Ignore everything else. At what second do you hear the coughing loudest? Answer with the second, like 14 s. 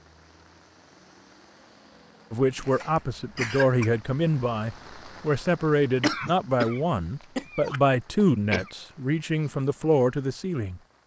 6 s.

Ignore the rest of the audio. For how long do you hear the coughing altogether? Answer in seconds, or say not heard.
4 s.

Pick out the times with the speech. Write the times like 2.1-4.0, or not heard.
2.3-10.8.